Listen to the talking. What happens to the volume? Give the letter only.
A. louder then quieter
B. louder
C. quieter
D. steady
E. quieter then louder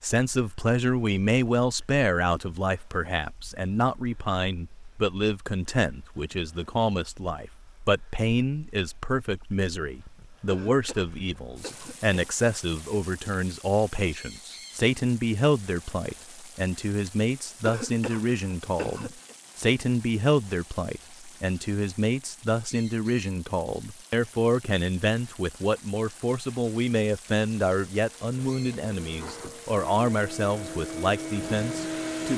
D.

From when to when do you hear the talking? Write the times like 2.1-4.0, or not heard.
0.0-32.3.